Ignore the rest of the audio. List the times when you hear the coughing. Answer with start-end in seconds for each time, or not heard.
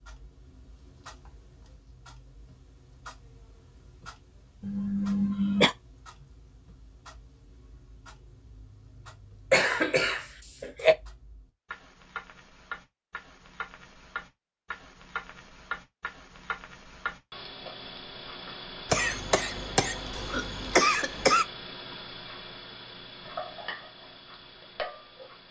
4.6-5.8, 9.5-10.9, 18.9-21.4.